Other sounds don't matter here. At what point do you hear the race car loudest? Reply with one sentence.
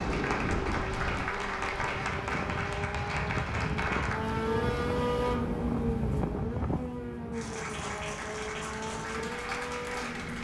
The loudest moment of the race car is at 5 seconds.